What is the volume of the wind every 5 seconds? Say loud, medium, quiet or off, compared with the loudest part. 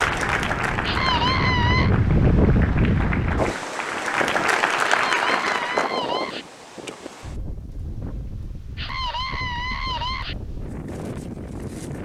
loud, medium, medium.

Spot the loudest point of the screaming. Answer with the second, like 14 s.
1 s.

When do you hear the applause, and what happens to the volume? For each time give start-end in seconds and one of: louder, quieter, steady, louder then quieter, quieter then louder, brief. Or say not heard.
0.0-6.0 quieter then louder.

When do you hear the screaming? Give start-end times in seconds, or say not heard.
0.8-1.9, 5.0-6.5, 8.8-10.3.